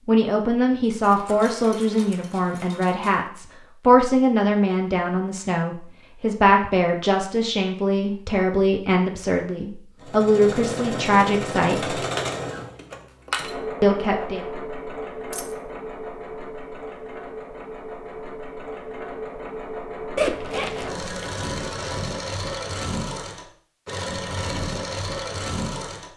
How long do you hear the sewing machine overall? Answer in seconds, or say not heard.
16 s.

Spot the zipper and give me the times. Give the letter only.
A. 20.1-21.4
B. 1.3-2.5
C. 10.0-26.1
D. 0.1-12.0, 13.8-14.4
A.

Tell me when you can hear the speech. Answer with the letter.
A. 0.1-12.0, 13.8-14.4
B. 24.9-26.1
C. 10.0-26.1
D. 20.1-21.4
A.